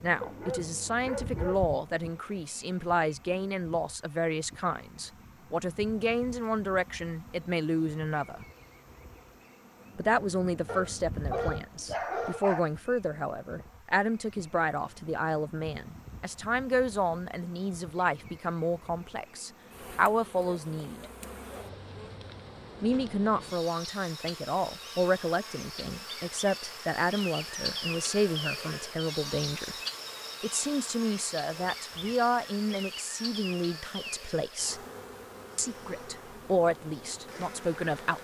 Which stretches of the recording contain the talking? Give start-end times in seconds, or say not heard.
0.0-8.4, 9.9-21.1, 22.8-29.8, 30.4-34.8, 35.5-38.1.